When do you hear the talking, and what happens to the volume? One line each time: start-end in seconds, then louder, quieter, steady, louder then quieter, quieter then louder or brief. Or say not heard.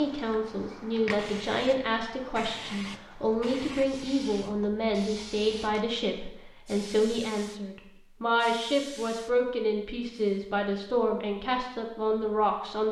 0.0-12.8 steady.